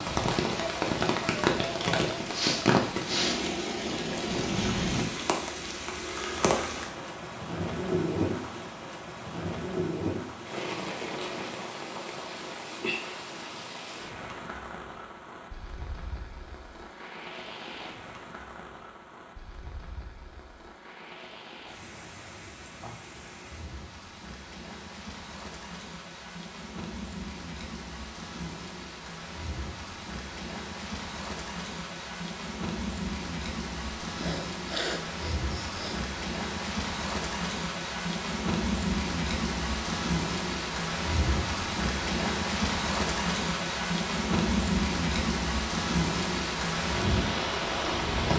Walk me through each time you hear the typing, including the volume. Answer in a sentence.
The typing can't be heard in this clip.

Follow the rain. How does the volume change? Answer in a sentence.
The loudness of the rain goes down, then up.